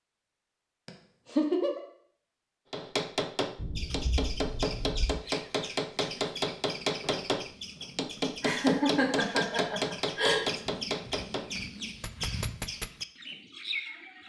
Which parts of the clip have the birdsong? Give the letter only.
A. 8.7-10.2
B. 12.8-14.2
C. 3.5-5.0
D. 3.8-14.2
D.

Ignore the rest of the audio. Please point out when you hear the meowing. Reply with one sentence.
You can hear the meowing from 3.5 to 5.0 s.